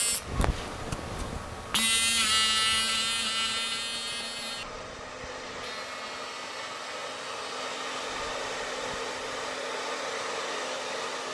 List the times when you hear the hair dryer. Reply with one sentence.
You can hear the hair dryer from 0.0 to 11.2 s.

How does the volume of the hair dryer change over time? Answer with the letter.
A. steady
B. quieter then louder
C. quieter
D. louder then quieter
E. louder
E.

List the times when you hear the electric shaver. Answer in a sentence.
You can hear the electric shaver from 0.0 to 9.6 s.